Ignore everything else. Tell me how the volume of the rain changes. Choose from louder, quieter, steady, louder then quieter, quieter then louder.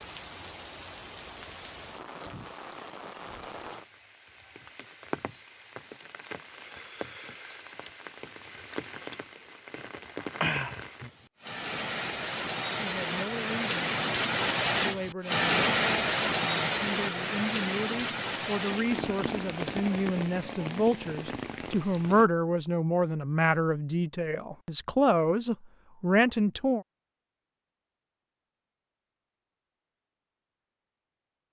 louder then quieter.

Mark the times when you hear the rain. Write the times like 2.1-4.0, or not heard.
0.0-22.3.